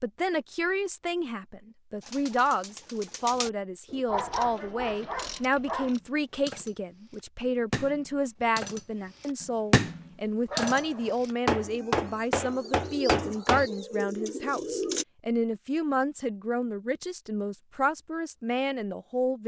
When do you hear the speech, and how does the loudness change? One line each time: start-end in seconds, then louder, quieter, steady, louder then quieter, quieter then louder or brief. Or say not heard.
0.0-19.4 steady.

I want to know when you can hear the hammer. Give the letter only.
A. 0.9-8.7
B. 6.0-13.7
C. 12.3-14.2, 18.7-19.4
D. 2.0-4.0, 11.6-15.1
B.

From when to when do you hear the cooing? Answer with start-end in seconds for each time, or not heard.
2.0-4.0, 11.6-15.1.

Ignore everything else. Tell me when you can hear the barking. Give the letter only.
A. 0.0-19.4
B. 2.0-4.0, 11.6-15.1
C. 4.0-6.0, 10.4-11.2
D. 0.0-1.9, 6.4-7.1
C.